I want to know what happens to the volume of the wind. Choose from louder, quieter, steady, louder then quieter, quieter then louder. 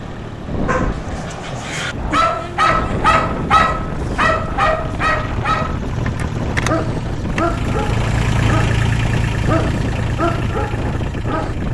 steady.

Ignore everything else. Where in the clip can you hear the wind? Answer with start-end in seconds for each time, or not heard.
0.0-11.6.